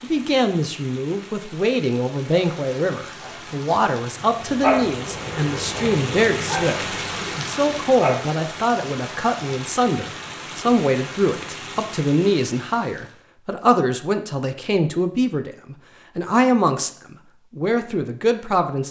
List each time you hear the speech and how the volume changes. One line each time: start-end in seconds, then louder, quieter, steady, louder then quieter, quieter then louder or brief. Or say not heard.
0.0-18.8 steady.